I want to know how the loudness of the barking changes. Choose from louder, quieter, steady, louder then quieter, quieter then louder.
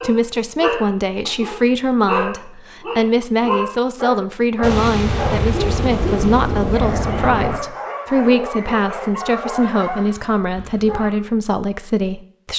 quieter.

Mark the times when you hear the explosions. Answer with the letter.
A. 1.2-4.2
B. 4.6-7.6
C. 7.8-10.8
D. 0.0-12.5
B.